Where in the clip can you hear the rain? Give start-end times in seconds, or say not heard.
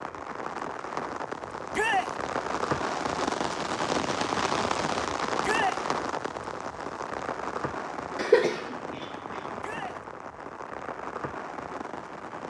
0.0-12.4.